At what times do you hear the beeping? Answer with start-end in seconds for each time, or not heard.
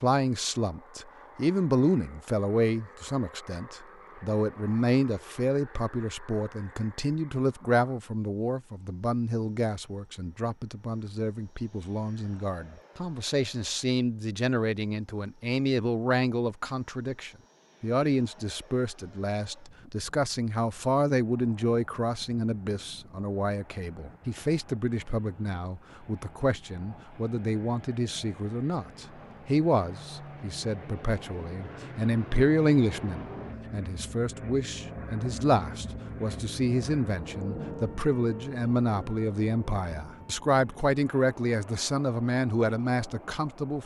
not heard.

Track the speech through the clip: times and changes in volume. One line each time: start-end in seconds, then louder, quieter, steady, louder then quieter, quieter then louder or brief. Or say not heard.
0.0-43.8 steady.